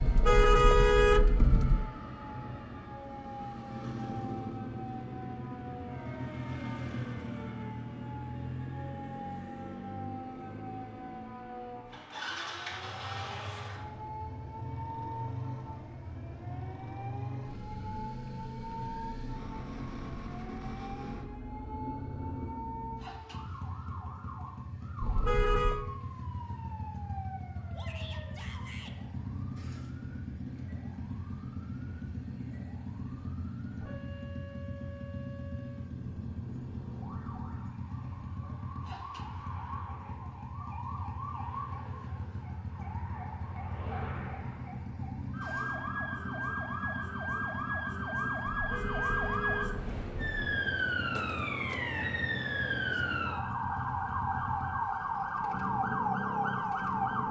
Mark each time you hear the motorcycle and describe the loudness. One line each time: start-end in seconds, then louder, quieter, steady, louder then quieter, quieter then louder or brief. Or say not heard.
0.0-57.2 steady.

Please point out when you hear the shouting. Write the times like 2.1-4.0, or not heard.
27.7-28.9.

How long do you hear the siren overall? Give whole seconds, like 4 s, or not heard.
57 s.